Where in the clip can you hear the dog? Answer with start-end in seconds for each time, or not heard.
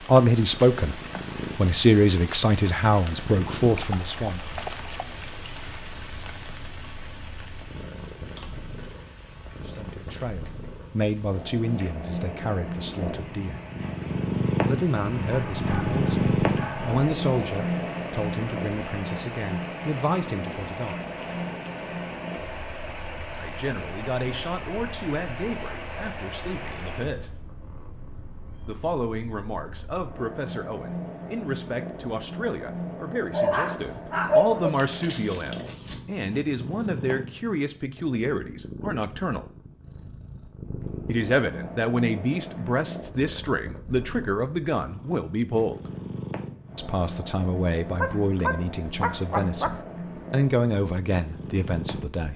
3.8-5.2, 15.3-17.0, 33.3-34.7, 48.0-49.8.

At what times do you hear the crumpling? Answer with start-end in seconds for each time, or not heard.
34.8-36.0.